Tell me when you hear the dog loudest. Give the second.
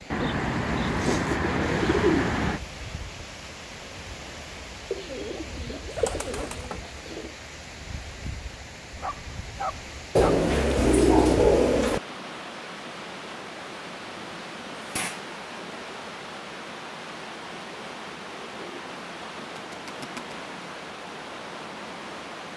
10 s.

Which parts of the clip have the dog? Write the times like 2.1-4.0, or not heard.
8.9-10.4.